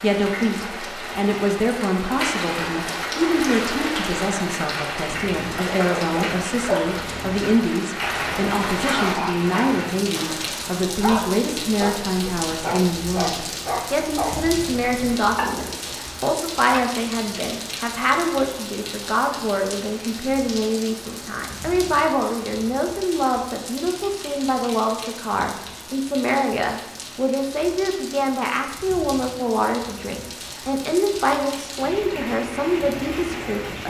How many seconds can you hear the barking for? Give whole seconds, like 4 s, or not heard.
12 s.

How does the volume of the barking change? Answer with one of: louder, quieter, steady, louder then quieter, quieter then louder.
steady.